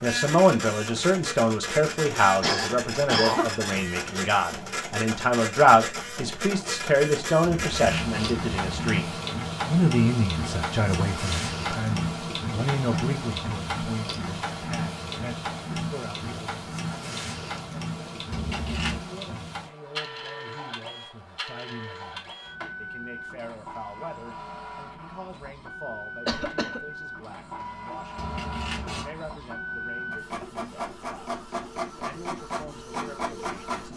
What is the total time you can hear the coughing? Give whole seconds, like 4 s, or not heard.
2 s.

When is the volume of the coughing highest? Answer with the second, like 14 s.
3 s.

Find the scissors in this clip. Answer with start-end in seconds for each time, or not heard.
7.4-8.9, 18.3-19.1, 28.1-29.1.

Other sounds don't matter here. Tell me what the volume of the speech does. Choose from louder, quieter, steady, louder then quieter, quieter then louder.
quieter.